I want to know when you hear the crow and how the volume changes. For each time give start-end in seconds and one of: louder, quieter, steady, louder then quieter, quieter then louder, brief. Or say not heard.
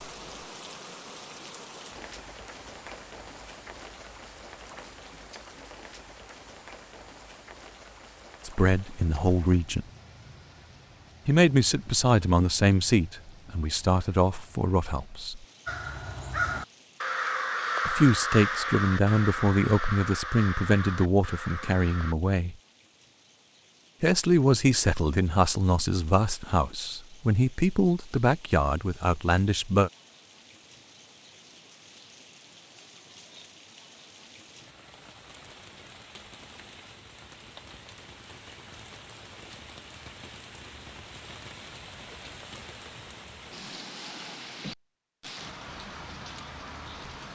15.7-22.1 quieter.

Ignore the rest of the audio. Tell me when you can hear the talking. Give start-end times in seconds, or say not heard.
8.4-9.8, 11.2-15.4, 17.9-22.6, 24.0-29.9.